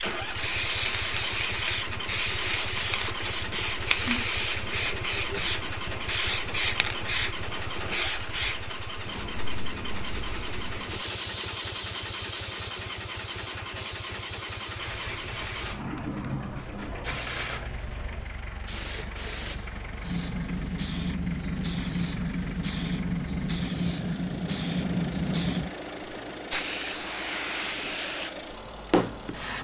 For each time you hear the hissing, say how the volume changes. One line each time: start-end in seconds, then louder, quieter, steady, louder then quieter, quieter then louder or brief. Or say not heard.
0.0-29.5 quieter then louder.